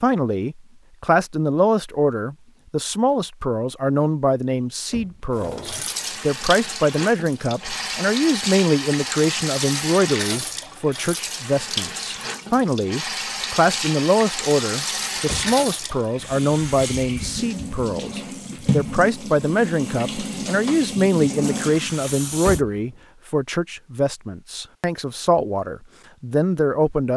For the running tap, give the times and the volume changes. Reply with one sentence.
The running tap can be heard from 5.3 to 22.6 s, at a steady volume.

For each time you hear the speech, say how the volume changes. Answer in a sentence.
The speech can be heard from 0.0 to 27.1 s, at a steady volume.